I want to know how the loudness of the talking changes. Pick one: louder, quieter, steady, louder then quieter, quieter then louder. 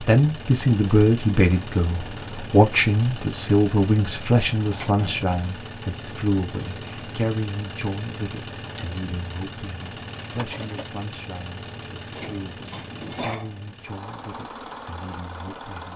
quieter.